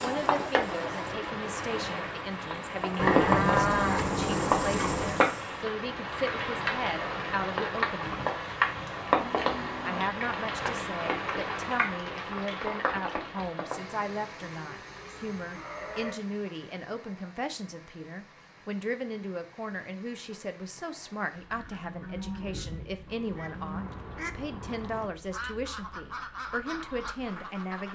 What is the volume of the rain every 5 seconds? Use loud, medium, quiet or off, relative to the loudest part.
loud, loud, medium, quiet, quiet, quiet.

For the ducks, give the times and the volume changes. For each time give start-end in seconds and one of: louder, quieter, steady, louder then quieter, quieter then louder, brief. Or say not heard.
21.4-27.9 louder.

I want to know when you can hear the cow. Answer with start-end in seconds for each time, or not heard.
3.0-5.2, 8.0-10.1, 14.4-16.1, 21.5-23.9.